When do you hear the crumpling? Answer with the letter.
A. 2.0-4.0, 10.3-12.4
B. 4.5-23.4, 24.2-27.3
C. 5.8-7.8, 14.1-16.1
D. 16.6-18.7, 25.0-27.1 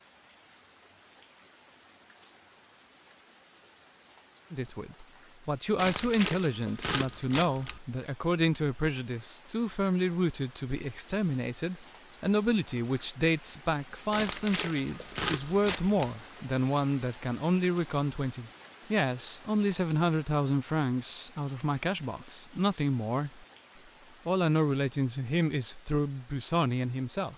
C.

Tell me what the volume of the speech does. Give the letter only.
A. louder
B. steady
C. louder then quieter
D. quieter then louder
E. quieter
B.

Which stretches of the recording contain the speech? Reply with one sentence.
You can hear the speech from 4.5 to 23.4 s and from 24.2 to 27.3 s.